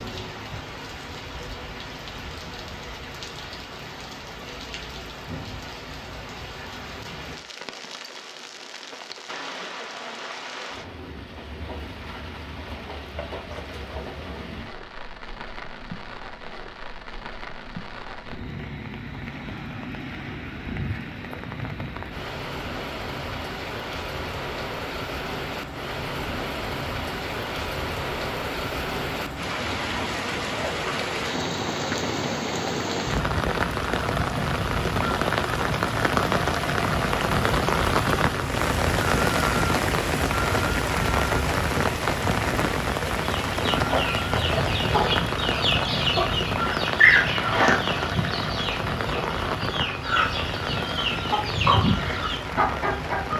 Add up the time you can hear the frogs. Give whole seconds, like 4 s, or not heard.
not heard.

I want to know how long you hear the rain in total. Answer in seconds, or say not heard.
53 s.